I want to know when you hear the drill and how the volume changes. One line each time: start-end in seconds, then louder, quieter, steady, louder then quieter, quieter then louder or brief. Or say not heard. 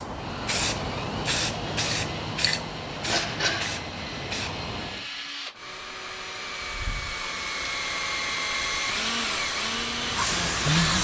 0.0-10.9 louder.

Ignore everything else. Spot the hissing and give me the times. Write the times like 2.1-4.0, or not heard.
0.0-5.0, 7.3-10.9.